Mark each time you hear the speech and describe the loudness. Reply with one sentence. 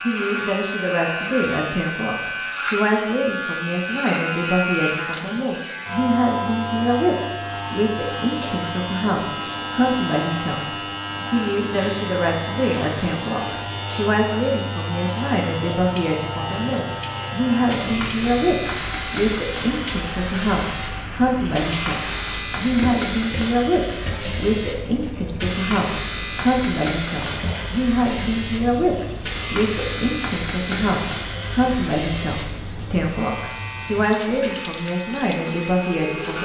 You can hear the speech from 0.0 to 36.4 s, at a steady volume.